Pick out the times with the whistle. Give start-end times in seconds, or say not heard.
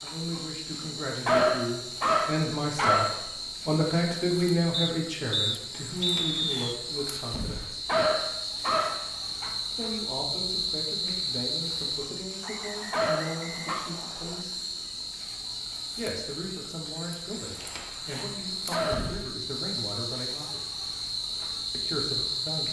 4.7-6.8, 12.4-14.4.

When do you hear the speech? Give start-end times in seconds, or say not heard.
0.0-7.9, 9.7-14.6, 15.9-20.6, 21.7-22.6.